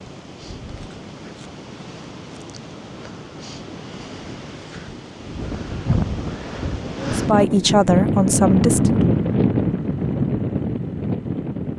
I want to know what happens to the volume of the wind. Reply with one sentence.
The loudness of the wind goes up.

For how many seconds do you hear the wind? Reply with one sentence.
You can hear the wind for 12 seconds altogether.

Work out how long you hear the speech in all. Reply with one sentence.
The speech can be heard for 2 seconds in total.